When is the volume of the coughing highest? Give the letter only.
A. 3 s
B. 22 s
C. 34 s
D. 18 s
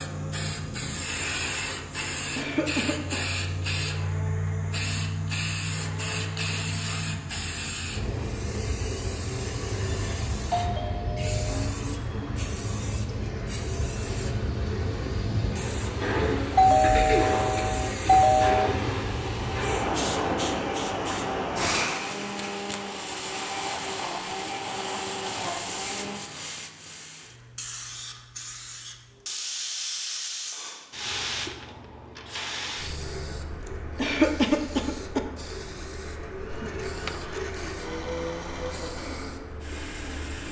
C.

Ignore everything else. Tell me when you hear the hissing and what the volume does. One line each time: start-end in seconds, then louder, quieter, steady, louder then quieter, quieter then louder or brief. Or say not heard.
0.0-40.4 quieter.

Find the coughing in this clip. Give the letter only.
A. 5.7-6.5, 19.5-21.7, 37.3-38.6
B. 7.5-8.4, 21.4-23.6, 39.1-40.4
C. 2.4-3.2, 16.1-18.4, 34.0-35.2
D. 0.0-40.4
C.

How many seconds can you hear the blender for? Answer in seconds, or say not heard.
34 s.